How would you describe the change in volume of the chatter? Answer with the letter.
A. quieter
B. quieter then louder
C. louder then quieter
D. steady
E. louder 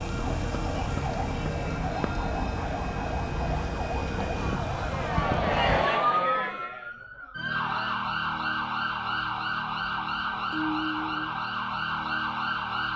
C.